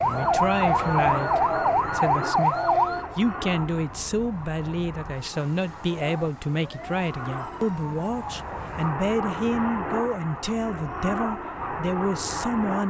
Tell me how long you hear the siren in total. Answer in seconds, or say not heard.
9 s.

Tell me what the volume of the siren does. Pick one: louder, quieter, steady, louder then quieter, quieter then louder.
quieter then louder.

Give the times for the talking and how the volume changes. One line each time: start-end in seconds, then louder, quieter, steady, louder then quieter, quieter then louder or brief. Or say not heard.
0.0-12.8 steady.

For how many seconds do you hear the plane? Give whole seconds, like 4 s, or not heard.
13 s.